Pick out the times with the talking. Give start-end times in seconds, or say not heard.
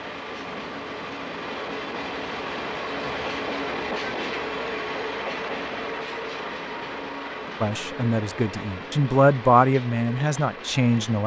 7.6-11.2.